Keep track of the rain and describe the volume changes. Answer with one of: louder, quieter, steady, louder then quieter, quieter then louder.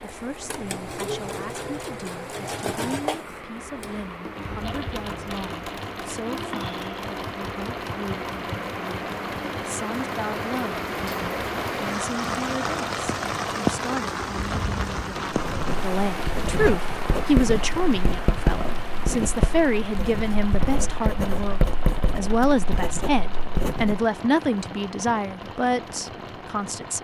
louder then quieter.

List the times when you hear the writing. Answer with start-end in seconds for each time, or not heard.
15.3-24.1.